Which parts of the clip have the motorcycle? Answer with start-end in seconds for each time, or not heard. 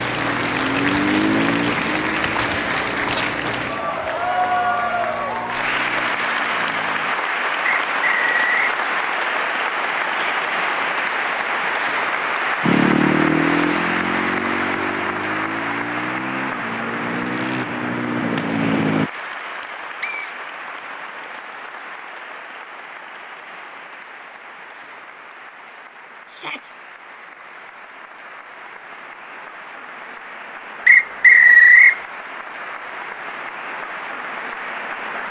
0.0-7.2, 12.6-19.1.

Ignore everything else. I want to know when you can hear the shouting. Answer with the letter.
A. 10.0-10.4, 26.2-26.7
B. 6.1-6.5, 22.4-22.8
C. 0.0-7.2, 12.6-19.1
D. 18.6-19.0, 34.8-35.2
A.